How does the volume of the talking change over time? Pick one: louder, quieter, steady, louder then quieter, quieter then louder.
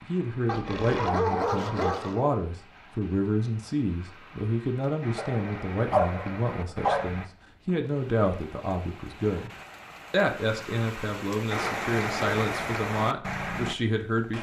steady.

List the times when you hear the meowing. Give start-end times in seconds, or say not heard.
not heard.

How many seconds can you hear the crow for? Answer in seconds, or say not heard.
not heard.